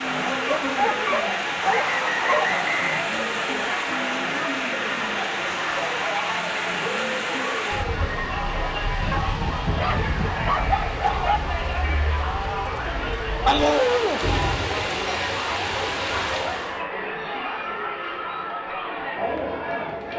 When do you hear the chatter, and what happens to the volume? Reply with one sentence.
You can hear the chatter from 0.0 to 20.1 s, at a steady volume.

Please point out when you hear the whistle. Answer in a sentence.
The whistle can be heard from 1.6 to 3.0 s.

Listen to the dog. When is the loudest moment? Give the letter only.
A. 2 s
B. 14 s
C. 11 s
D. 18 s
B.